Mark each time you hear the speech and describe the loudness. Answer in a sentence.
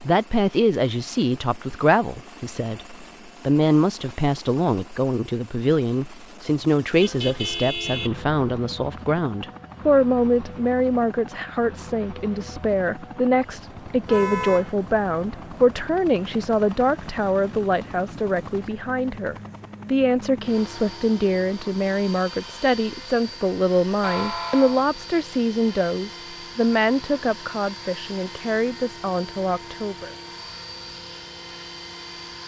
The speech can be heard from 0.0 to 30.1 s, at a steady volume.